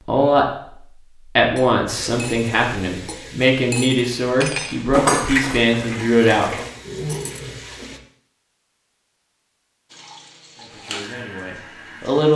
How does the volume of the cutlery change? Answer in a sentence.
The loudness of the cutlery goes up, then down.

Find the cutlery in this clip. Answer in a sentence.
The cutlery can be heard from 1.6 to 7.4 s.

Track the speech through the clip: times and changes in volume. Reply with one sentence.
The speech can be heard from 0.0 to 6.5 s, at a steady volume; and briefly from 10.6 to 12.3 s.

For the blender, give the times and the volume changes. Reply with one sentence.
The blender can't be heard in this clip.